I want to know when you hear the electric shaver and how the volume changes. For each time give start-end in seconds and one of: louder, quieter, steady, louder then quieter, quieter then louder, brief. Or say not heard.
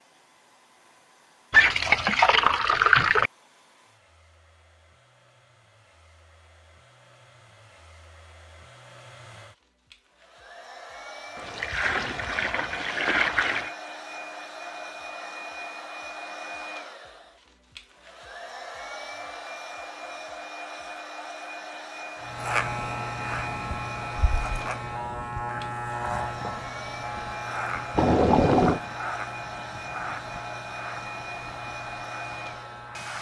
22.2-33.1 quieter.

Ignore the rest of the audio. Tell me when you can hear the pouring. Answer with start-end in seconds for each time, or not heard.
1.5-3.3, 11.3-13.7, 27.9-28.8.